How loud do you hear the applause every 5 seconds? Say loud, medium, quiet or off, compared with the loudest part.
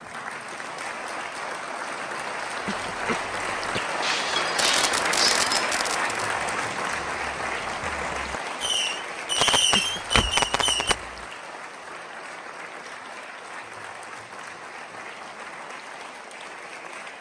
loud, loud, medium, medium.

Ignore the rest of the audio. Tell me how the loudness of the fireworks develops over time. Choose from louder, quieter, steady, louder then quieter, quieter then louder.
quieter then louder.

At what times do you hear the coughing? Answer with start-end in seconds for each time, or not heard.
2.6-3.8, 9.7-10.4.